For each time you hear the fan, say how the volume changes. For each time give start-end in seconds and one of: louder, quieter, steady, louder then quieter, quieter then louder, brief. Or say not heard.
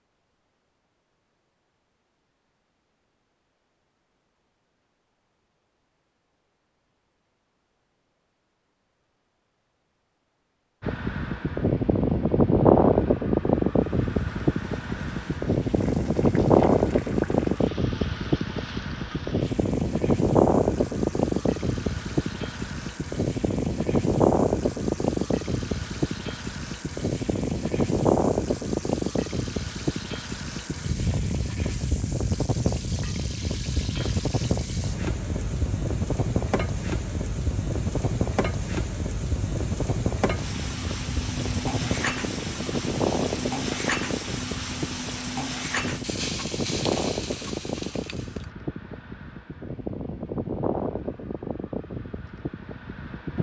10.8-53.3 quieter.